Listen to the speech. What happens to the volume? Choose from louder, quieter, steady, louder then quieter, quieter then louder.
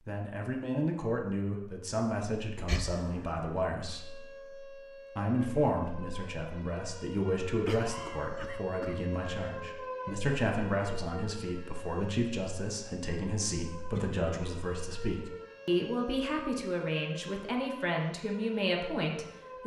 steady.